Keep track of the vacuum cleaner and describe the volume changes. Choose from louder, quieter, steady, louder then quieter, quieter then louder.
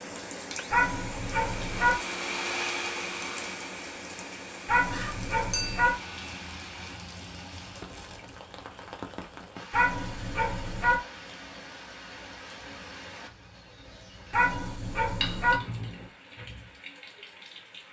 louder then quieter.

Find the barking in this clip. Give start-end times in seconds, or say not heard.
0.7-1.9, 4.7-6.0, 9.7-11.0, 14.3-15.6.